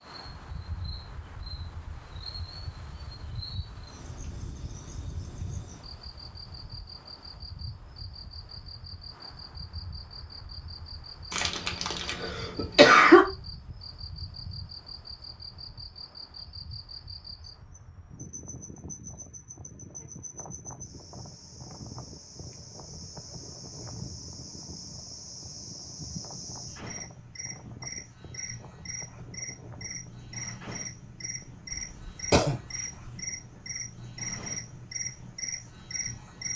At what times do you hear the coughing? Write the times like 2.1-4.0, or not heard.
11.3-13.2, 31.7-32.5.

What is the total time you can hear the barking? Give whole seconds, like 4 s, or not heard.
not heard.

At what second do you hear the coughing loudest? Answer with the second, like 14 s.
13 s.